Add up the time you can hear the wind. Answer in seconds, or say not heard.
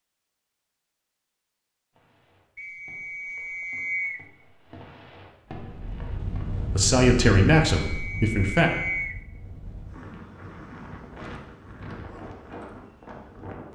8 s.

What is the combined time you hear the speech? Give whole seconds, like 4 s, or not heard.
2 s.